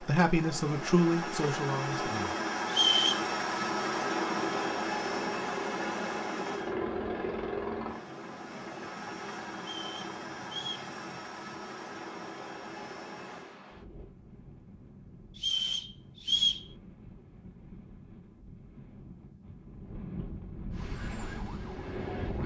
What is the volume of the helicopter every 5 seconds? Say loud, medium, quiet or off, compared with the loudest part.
loud, loud, medium, off, off.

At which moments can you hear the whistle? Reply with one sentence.
You can hear the whistle from 2.6 to 3.2 s, from 9.6 to 10.9 s and from 15.3 to 16.6 s.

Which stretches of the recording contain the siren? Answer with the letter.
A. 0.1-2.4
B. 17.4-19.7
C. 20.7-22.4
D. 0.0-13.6
C.